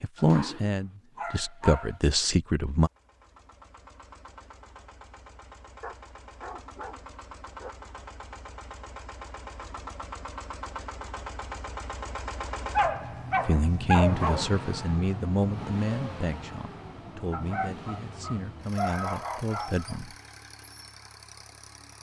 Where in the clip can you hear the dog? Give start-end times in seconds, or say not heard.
0.1-2.0, 5.8-7.7, 12.7-14.5, 17.3-20.0.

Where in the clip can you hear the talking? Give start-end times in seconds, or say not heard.
0.0-2.9, 13.4-20.1.